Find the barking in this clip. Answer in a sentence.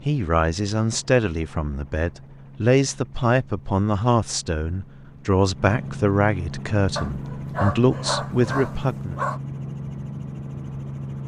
The barking can be heard from 7.0 to 9.4 s.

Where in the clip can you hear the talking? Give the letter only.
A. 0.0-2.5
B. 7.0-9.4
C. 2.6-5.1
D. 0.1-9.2
D.